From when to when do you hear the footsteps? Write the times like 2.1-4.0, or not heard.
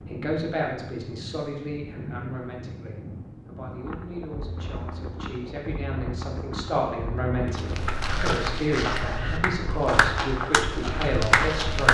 7.5-11.8.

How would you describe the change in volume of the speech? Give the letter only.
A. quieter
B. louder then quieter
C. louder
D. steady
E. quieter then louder
E.